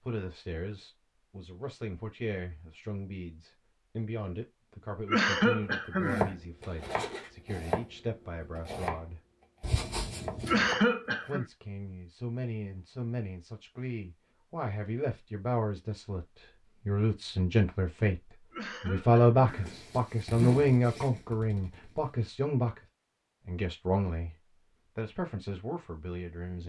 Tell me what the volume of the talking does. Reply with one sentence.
The loudness of the talking goes up, then down.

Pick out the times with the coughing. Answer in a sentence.
The coughing can be heard from 5.0 to 6.3 s, from 10.4 to 11.4 s and from 18.5 to 19.8 s.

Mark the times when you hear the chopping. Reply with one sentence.
You can hear the chopping from 6.0 to 11.3 s.